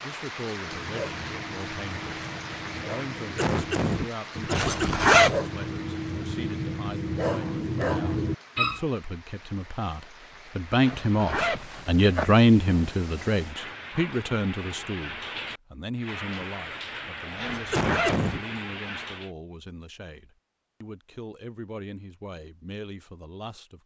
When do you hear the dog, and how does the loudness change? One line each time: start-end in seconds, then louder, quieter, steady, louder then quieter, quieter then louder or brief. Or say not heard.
0.6-8.8 louder.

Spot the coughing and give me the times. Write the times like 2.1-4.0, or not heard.
3.4-5.0, 17.7-18.4.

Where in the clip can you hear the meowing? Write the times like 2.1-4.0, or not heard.
not heard.